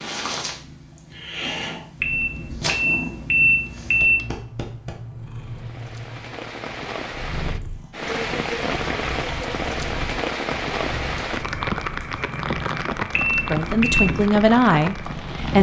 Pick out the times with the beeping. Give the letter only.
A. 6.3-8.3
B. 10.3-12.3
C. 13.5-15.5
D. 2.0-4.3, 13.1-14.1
D.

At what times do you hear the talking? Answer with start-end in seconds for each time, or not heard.
13.5-15.5.